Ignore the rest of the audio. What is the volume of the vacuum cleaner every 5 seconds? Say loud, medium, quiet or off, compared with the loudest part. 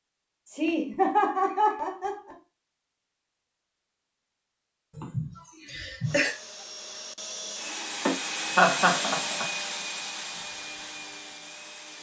off, loud, medium.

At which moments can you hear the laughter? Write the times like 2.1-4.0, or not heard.
0.5-2.4, 4.9-6.3, 8.1-9.4.